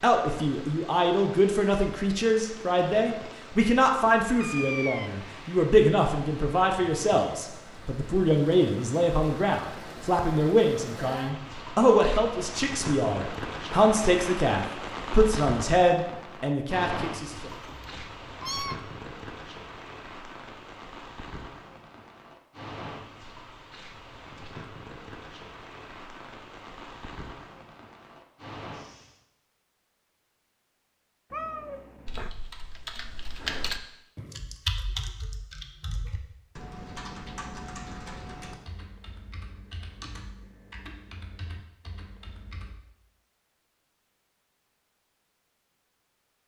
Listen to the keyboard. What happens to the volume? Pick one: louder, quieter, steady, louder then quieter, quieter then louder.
quieter.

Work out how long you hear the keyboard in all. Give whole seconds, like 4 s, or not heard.
11 s.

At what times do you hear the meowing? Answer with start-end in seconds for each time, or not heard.
4.4-5.1, 17.5-18.9, 31.3-32.3.